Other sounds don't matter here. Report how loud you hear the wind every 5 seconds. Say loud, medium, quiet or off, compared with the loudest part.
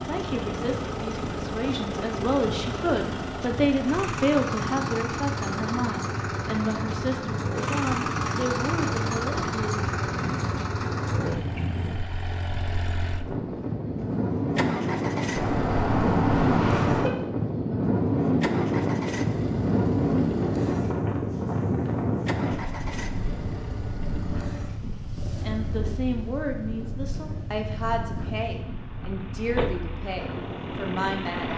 medium, medium, medium, loud, loud, quiet, medium.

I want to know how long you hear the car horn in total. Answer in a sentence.
The car horn can be heard for 2 seconds in total.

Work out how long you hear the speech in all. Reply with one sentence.
The speech can be heard for 16 seconds in total.